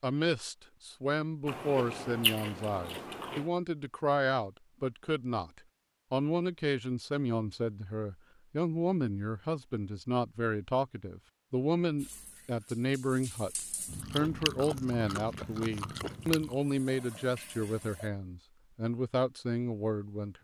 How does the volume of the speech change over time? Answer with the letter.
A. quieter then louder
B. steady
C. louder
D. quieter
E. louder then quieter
B.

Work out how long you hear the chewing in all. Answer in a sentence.
You can hear the chewing for 5 seconds altogether.